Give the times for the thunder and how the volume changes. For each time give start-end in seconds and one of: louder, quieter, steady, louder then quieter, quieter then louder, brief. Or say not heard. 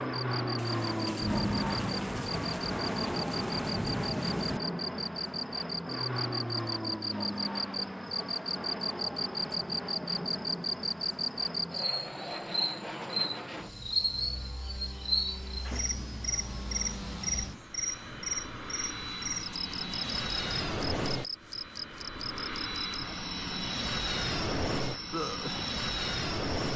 0.6-4.6 steady
15.2-17.8 brief.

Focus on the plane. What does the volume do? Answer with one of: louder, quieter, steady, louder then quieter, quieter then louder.
quieter then louder.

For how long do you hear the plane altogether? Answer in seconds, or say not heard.
27 s.